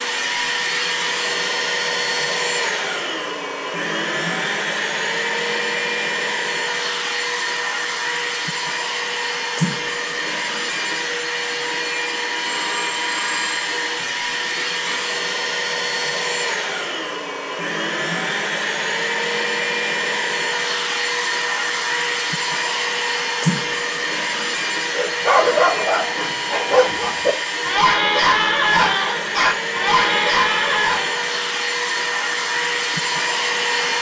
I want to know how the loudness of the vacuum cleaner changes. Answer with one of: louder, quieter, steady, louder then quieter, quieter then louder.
steady.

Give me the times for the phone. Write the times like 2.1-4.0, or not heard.
12.4-15.1.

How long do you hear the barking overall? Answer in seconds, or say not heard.
6 s.